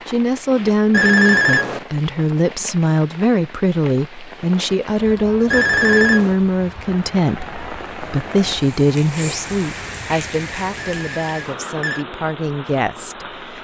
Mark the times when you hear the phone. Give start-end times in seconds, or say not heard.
0.9-1.9, 5.5-6.3, 10.8-12.1.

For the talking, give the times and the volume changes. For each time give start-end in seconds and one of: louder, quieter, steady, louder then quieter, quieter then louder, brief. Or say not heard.
0.1-13.6 quieter.